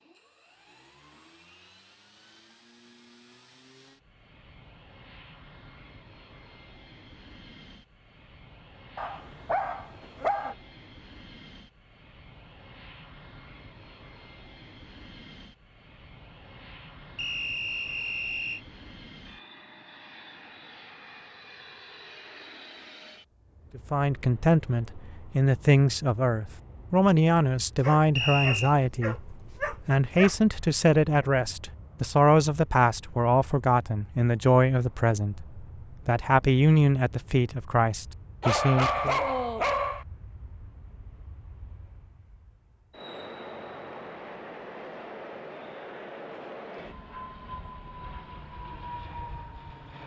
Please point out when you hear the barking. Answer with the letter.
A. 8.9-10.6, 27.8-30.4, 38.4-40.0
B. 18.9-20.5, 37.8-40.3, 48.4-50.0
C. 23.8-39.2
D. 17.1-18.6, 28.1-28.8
A.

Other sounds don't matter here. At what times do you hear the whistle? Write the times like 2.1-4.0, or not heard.
17.1-18.6, 28.1-28.8.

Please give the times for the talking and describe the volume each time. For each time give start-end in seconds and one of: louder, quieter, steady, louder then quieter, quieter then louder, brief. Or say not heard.
23.8-39.2 steady.